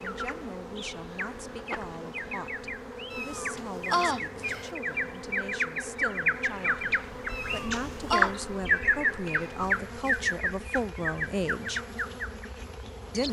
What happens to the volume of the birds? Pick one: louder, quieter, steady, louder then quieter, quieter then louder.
louder then quieter.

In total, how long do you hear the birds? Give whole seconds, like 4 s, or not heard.
13 s.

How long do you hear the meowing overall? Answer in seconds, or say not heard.
3 s.